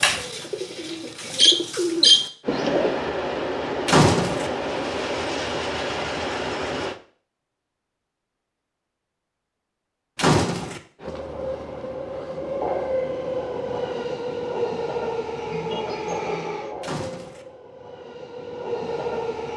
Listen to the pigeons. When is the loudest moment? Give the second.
2 s.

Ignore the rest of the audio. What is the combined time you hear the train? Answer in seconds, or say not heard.
13 s.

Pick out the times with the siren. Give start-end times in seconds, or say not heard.
not heard.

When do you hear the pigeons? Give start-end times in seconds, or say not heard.
0.0-3.0.